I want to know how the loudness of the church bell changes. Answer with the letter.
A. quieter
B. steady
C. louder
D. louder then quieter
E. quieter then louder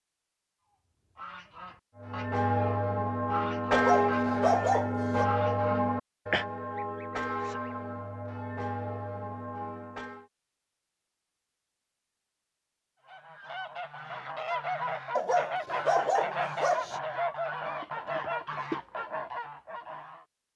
A.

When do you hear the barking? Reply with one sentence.
The barking can be heard from 3.7 to 5.2 s and from 15.2 to 17.0 s.